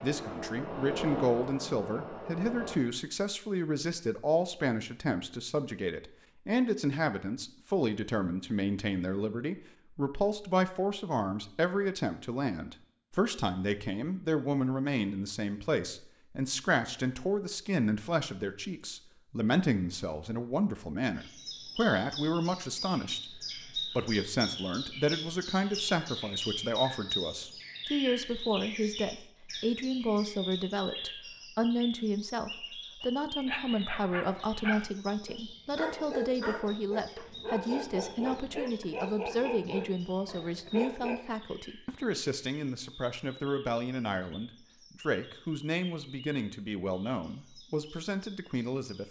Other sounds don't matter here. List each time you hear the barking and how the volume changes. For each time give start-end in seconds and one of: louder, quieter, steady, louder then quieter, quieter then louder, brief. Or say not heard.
33.0-41.2 steady.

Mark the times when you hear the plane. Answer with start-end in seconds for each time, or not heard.
0.0-2.8.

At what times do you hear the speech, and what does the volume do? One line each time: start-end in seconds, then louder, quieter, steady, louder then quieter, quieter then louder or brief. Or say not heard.
0.0-49.0 steady.